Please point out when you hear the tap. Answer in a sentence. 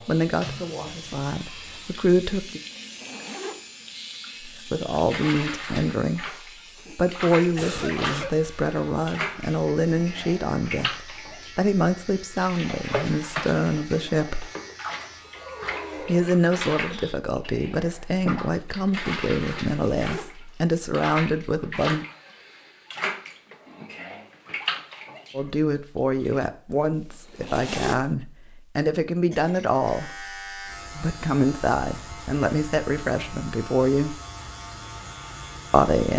You can hear the tap from 0.0 to 26.4 s.